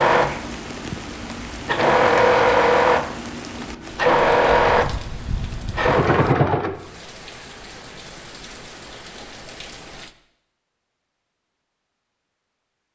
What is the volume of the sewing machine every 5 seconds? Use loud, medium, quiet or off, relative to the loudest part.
loud, loud, off.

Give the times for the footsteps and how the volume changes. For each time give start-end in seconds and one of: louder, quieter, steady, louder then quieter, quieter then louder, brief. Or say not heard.
not heard.